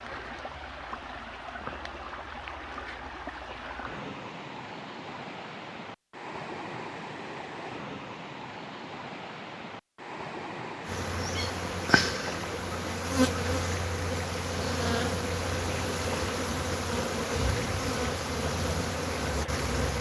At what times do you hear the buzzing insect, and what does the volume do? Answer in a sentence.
You can hear the buzzing insect from 10.8 to 19.9 s, at a steady volume.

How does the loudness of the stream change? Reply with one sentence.
The volume of the stream stays about the same.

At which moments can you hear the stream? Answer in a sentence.
You can hear the stream from 0.0 to 19.9 s.